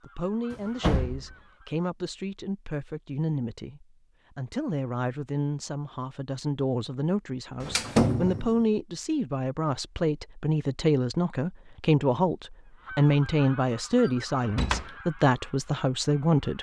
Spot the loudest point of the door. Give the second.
8 s.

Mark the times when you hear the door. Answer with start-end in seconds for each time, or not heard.
0.5-1.4, 7.6-8.7, 14.5-14.9.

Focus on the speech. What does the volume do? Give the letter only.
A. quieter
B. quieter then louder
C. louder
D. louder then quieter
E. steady
C.